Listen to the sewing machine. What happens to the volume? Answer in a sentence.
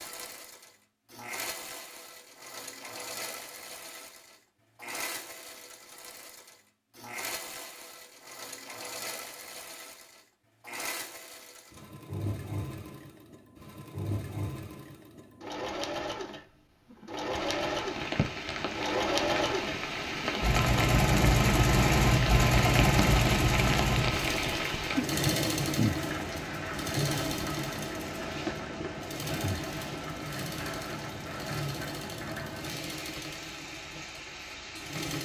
The volume of the sewing machine goes up, then down.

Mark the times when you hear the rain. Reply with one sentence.
The rain can be heard from 17.3 to 35.1 s.